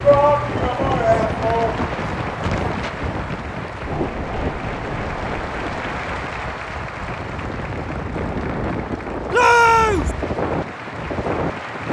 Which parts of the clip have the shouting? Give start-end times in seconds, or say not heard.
0.0-1.9, 9.3-10.1.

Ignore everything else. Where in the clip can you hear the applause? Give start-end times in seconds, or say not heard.
0.0-11.8.